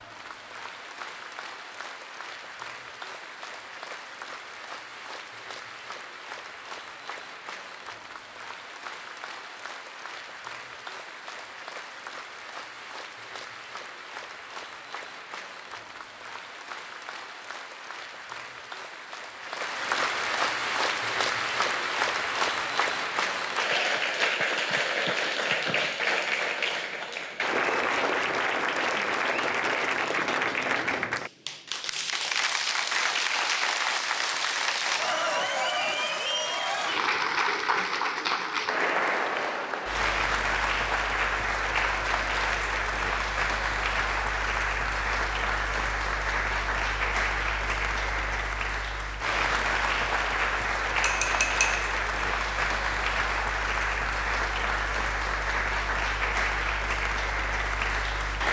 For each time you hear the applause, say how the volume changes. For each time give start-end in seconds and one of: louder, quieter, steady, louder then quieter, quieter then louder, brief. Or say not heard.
0.0-58.4 louder.